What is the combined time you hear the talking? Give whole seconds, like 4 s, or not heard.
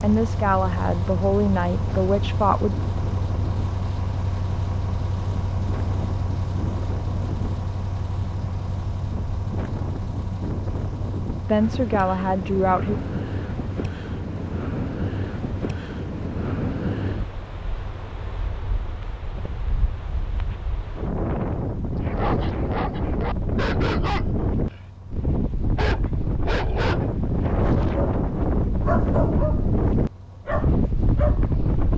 4 s.